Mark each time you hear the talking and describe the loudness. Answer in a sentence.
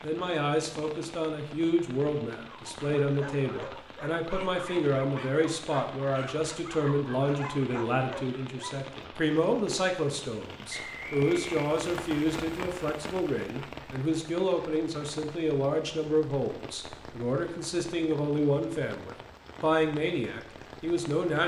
The talking can be heard from 0.0 to 21.4 s, at a steady volume.